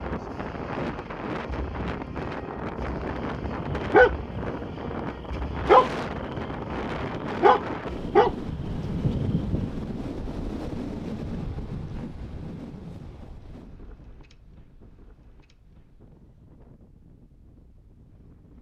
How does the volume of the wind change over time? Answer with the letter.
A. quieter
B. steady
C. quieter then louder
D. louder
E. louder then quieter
A.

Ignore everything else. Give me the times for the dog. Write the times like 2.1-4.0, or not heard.
3.4-9.7.